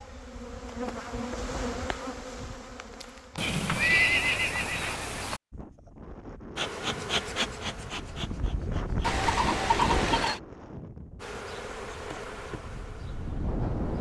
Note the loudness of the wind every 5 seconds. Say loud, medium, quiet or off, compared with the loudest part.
off, loud, loud.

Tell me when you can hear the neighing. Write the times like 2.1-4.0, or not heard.
3.4-5.4, 9.0-10.4.